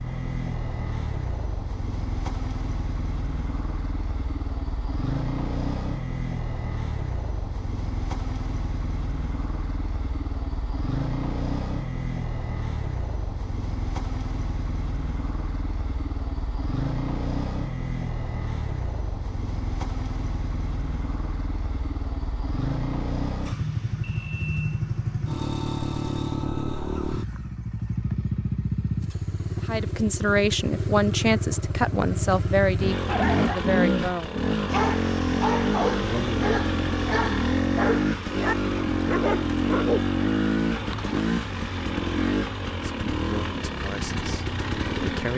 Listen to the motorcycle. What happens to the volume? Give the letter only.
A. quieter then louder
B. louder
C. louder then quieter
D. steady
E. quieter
B.